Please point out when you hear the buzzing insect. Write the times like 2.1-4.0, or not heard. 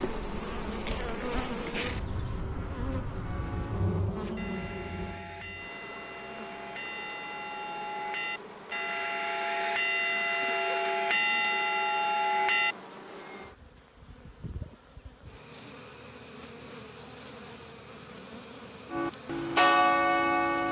0.0-20.6.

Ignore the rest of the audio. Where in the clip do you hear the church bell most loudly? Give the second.
20 s.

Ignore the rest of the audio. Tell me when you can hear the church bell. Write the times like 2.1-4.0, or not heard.
3.2-12.8, 18.9-20.6.